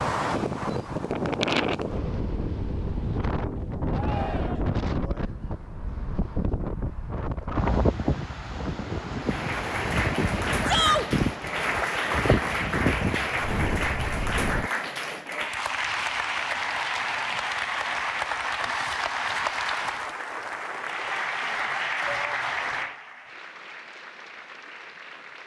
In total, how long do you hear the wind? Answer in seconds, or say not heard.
15 s.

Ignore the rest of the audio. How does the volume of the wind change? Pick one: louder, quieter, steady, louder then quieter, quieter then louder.
steady.